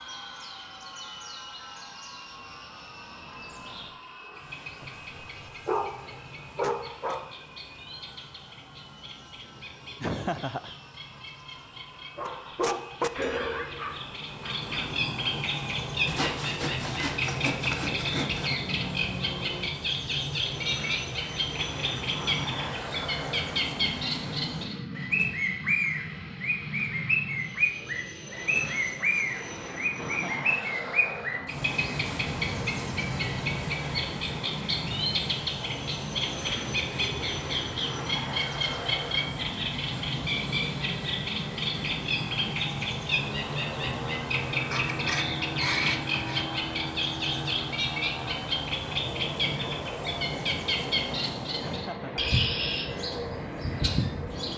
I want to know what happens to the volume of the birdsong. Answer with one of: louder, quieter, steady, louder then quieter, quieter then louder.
louder.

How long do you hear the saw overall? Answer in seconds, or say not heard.
4 s.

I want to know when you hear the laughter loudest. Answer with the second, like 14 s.
10 s.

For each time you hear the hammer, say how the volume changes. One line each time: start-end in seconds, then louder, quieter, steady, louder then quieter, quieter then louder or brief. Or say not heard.
not heard.